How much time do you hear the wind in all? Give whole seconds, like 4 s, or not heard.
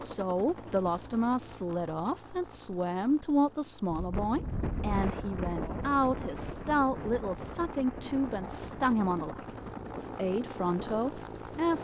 8 s.